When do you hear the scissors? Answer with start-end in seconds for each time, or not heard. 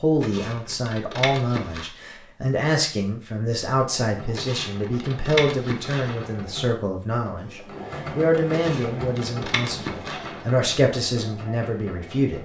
0.2-1.9, 4.3-6.3, 8.5-10.4.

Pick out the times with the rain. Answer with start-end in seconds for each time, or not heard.
not heard.